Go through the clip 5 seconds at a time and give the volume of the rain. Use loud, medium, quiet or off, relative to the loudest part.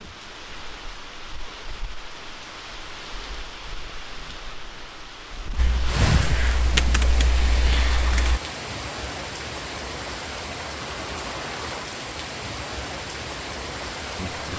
medium, loud, loud.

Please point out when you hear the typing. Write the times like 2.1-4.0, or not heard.
5.5-8.4.